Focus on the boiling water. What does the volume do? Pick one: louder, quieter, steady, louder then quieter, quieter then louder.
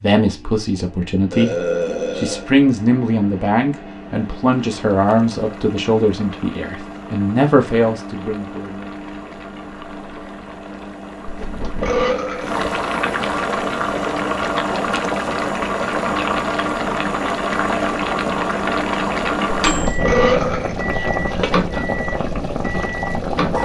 louder.